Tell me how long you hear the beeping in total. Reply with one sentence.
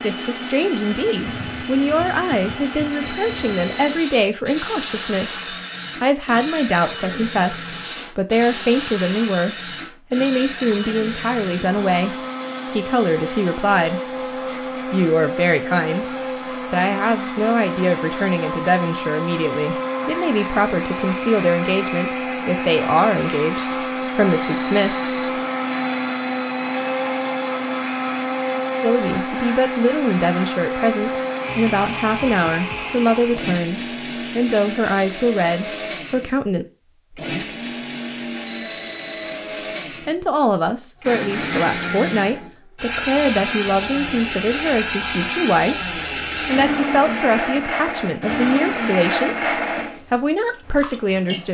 You can hear the beeping for 4 seconds altogether.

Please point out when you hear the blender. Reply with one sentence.
The blender can be heard from 0.0 to 51.4 s.